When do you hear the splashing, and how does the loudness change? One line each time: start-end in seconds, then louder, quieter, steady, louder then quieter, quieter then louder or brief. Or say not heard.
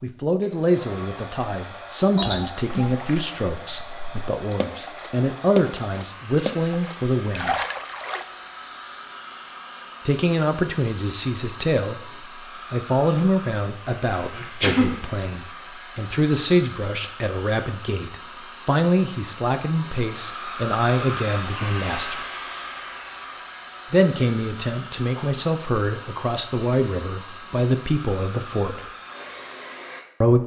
2.8-8.2 louder.